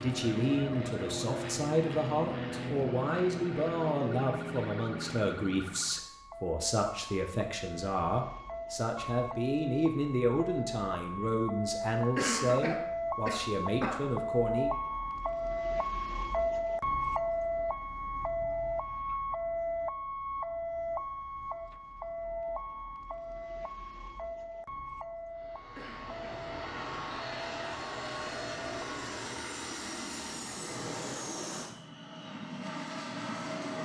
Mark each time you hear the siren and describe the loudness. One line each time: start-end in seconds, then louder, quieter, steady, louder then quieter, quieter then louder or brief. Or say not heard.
0.2-28.9 louder then quieter.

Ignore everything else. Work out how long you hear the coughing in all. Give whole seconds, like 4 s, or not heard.
3 s.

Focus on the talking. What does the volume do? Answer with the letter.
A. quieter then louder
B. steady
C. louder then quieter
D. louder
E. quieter
B.